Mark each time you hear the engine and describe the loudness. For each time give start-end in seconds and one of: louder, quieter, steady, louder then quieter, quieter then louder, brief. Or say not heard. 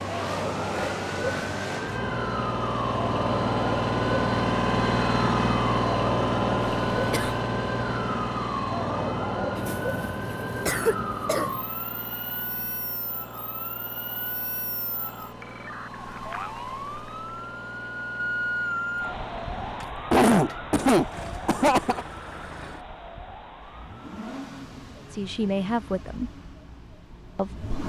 0.0-27.8 quieter.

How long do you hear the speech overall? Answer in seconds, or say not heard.
2 s.